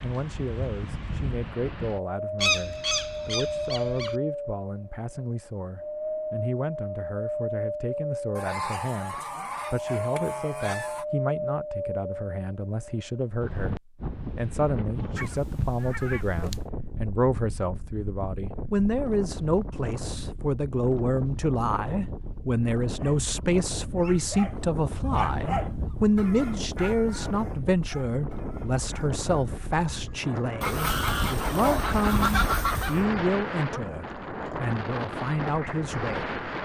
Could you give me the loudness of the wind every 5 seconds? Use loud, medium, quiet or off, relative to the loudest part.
loud, loud, loud, medium, medium, medium, loud, loud.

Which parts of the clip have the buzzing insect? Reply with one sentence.
The buzzing insect can't be heard in this clip.